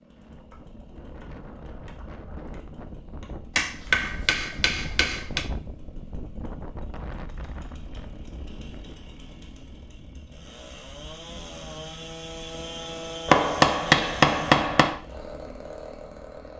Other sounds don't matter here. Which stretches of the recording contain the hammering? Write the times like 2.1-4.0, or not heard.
3.5-5.5, 13.2-15.0.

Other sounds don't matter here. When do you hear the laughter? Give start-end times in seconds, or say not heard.
not heard.